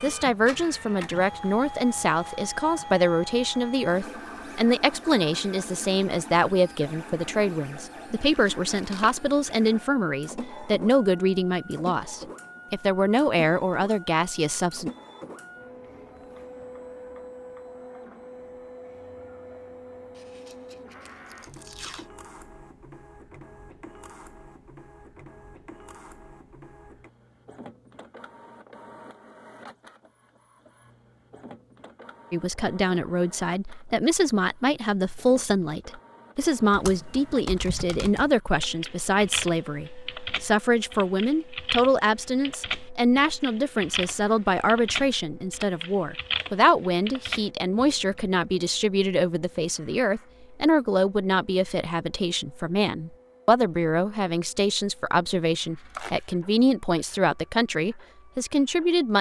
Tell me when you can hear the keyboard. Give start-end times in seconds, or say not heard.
36.7-48.3.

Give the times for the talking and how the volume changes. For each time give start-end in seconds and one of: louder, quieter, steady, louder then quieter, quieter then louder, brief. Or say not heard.
0.0-14.9 steady
32.3-59.1 steady.